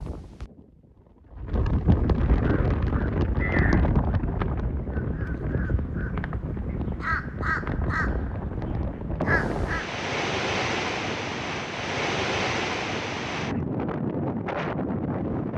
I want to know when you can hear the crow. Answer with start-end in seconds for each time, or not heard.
2.4-9.9.